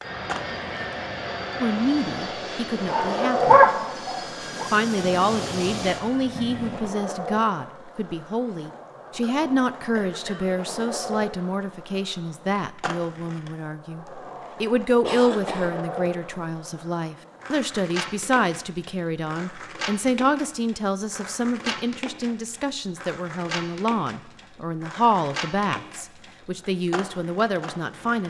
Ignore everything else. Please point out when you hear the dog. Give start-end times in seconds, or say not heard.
2.9-4.7.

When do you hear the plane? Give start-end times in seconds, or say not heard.
0.0-7.0.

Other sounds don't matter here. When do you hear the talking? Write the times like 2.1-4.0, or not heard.
1.6-3.6, 4.7-28.2.